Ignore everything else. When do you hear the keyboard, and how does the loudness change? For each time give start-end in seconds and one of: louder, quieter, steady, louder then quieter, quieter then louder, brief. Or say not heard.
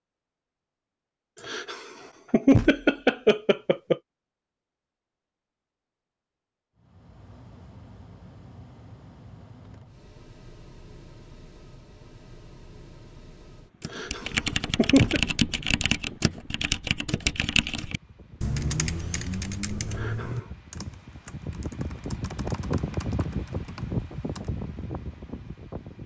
13.8-24.5 quieter.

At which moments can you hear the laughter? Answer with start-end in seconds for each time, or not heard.
1.4-4.0, 13.8-15.2, 19.9-20.6.